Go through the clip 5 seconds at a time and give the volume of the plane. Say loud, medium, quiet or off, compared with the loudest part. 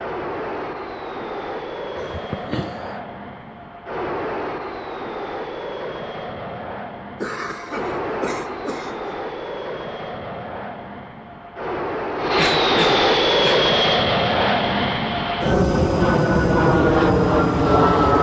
quiet, quiet, loud, loud.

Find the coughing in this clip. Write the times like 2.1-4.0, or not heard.
1.9-3.0, 7.2-9.2, 12.3-13.7.